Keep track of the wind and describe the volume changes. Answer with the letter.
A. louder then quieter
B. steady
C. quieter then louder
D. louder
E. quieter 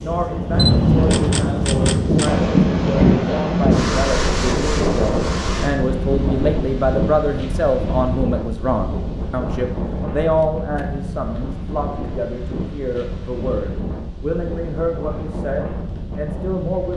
E.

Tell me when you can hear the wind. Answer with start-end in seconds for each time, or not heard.
0.0-16.9.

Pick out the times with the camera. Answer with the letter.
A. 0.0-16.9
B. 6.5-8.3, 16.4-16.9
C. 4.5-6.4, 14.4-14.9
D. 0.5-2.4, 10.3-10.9
D.